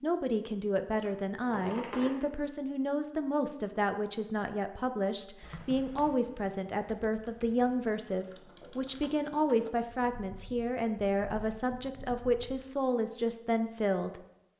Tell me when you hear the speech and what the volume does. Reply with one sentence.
The speech can be heard from 0.0 to 14.2 s, at a steady volume.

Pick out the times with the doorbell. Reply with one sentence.
You can't hear the doorbell here.